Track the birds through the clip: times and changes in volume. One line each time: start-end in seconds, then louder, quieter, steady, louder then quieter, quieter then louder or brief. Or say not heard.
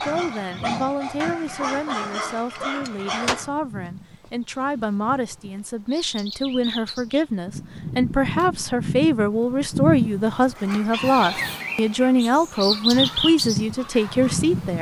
0.0-14.7 louder.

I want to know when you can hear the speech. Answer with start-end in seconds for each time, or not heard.
0.0-14.7.